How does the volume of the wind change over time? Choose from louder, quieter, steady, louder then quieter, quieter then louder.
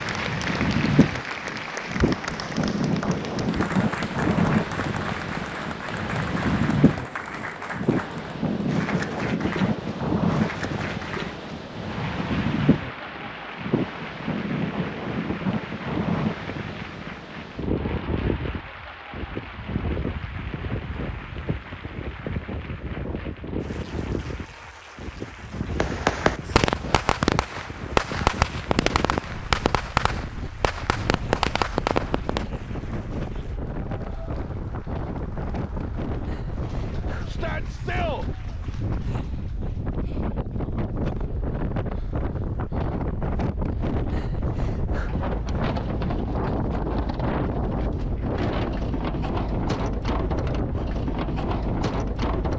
quieter then louder.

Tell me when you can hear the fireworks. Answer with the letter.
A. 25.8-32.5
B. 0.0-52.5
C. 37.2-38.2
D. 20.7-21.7
A.